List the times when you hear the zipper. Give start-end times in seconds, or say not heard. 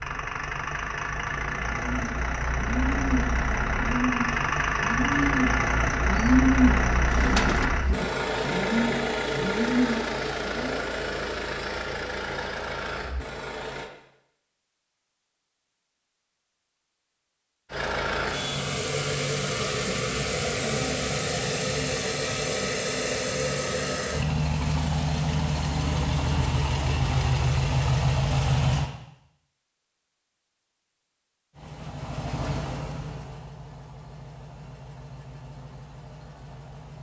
not heard.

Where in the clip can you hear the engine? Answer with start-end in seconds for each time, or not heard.
0.0-13.9, 17.7-28.9, 31.5-36.9.